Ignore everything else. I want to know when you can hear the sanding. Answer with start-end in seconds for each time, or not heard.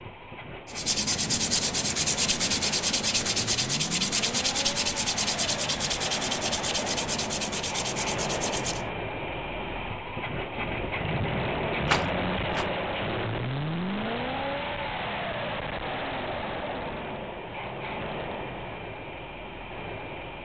0.7-8.9.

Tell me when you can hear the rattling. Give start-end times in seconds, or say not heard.
11.8-12.7.